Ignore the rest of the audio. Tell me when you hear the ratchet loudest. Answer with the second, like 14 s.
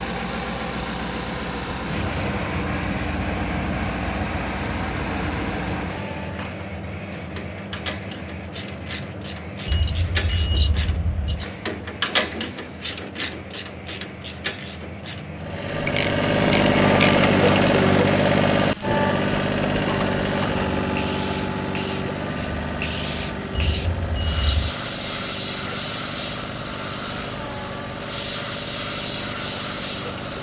12 s.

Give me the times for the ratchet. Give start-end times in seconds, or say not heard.
6.3-17.3.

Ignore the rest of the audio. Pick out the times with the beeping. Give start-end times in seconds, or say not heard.
9.7-11.4, 23.5-24.8.